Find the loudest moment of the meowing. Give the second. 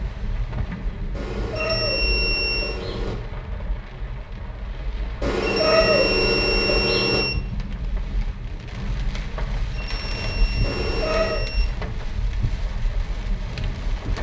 6 s.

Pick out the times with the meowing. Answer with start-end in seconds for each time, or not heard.
1.1-3.1, 5.2-7.2, 10.6-11.4.